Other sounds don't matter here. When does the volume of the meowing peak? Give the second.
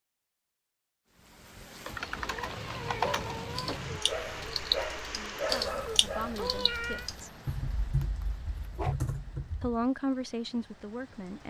7 s.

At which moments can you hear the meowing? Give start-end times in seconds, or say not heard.
2.0-3.8, 5.8-7.1.